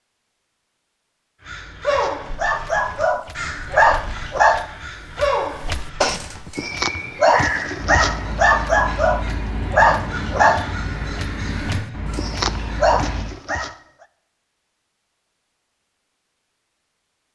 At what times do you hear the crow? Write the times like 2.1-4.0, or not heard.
1.4-13.3.